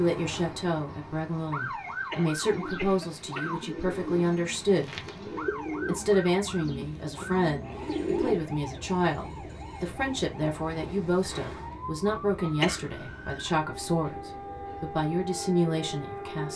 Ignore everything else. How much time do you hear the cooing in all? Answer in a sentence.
You can hear the cooing for 6 seconds altogether.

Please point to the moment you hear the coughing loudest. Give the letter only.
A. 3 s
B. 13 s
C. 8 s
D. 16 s
B.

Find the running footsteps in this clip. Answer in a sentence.
You can't hear the running footsteps here.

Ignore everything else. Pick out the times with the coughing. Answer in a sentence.
The coughing can be heard from 2.1 to 3.5 s and from 12.6 to 13.1 s.